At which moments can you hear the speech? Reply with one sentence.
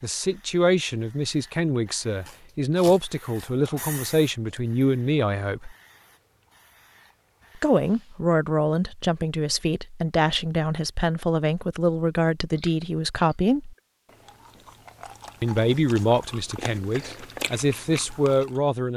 You can hear the speech from 0.0 to 5.8 s, from 7.5 to 13.8 s and from 15.4 to 18.9 s.